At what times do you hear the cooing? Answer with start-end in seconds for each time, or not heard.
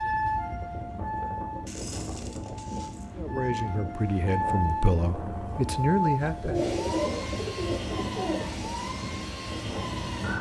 1.6-3.1, 6.4-8.4.